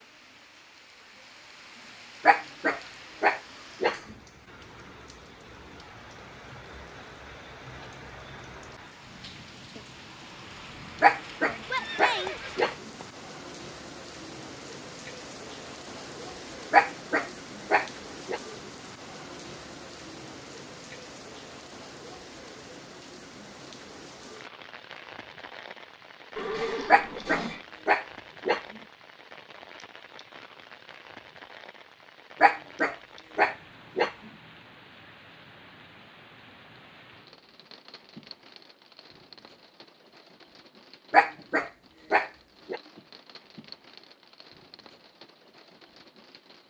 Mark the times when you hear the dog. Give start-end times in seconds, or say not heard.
2.2-4.0, 11.0-12.8, 16.7-18.4, 26.9-28.6, 32.4-34.1, 41.1-42.8.